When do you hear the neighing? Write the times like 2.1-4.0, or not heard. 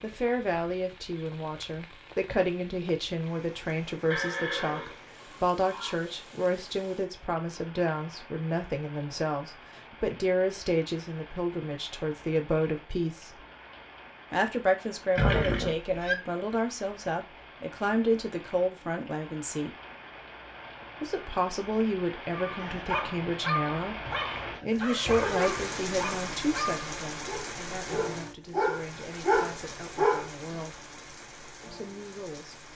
4.1-6.0, 15.2-16.1, 24.9-25.7.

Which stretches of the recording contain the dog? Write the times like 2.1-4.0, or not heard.
22.3-30.6.